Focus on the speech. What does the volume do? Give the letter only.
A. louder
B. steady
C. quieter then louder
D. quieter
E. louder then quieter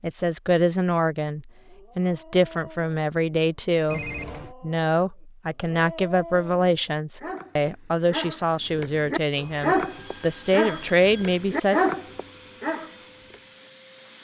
B.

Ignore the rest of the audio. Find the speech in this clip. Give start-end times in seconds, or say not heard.
0.0-11.8.